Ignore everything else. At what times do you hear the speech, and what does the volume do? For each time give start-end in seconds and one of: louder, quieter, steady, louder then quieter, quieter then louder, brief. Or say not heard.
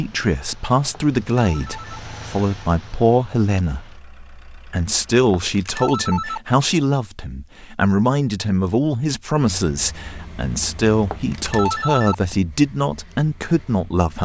0.0-14.2 steady.